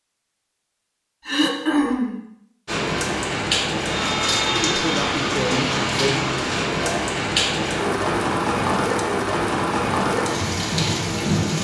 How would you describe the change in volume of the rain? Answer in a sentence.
The loudness of the rain stays about the same.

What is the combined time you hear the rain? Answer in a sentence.
You can hear the rain for 9 seconds altogether.